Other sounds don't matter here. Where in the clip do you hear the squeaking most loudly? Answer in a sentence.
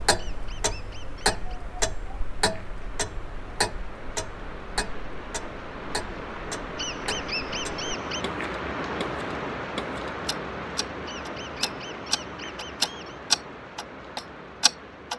The loudest moment of the squeaking is at 7 seconds.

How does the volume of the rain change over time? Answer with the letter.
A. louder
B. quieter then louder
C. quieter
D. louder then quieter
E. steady
D.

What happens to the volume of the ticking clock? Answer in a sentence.
The loudness of the ticking clock goes down, then up.